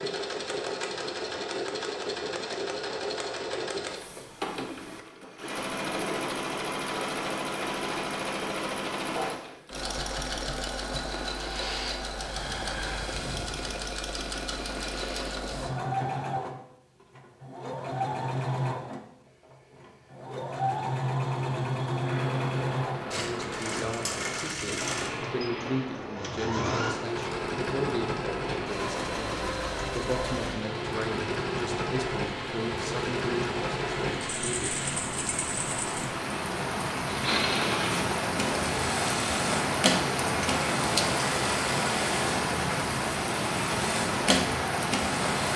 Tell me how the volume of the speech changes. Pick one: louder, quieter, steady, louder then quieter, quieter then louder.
steady.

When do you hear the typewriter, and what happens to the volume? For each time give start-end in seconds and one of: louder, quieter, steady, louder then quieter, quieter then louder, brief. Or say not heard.
not heard.